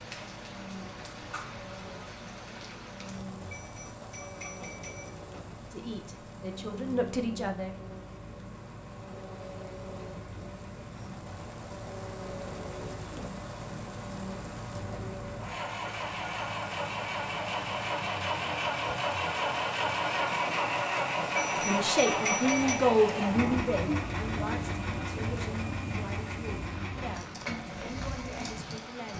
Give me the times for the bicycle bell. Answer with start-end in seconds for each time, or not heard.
3.5-5.5, 21.4-22.9.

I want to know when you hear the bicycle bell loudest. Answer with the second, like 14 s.
22 s.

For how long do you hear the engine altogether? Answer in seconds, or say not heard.
29 s.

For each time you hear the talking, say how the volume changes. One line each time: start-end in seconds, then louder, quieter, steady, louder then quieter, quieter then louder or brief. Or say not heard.
5.7-7.8 brief
21.6-29.1 quieter.